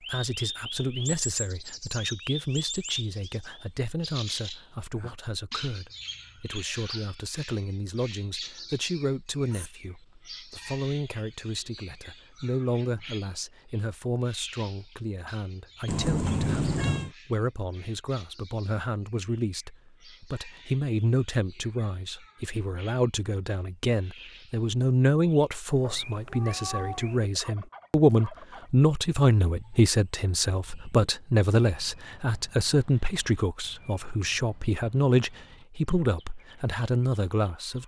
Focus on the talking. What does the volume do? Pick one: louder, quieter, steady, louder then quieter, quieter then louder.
louder.